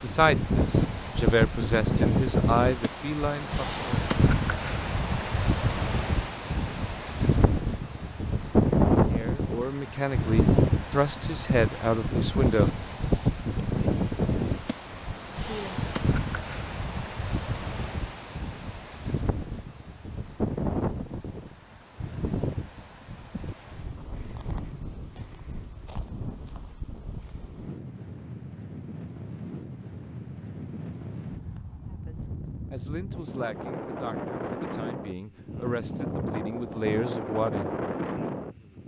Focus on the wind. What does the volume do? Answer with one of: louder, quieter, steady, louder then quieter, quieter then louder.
quieter then louder.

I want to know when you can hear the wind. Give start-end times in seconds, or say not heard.
0.0-38.8.